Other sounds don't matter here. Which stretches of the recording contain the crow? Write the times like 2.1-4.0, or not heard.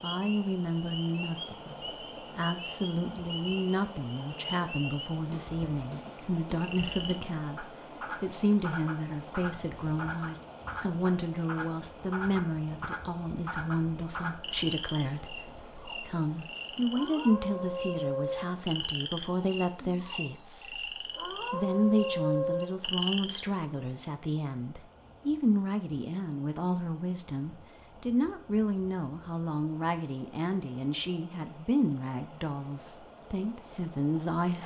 not heard.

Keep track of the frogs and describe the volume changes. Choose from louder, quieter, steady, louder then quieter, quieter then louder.
louder.